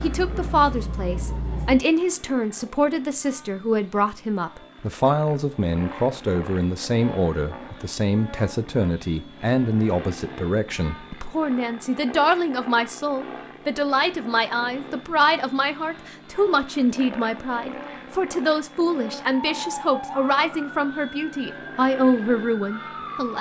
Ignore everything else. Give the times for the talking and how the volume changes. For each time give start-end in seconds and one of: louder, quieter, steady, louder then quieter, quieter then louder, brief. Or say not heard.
0.0-23.3 steady.